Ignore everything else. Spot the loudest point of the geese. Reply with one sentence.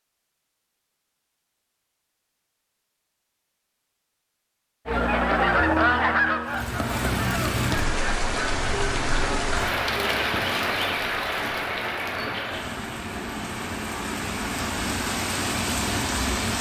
The volume of the geese peaks at 6 seconds.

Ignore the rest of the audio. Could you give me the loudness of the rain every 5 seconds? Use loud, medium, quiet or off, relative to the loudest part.
off, loud, loud, loud.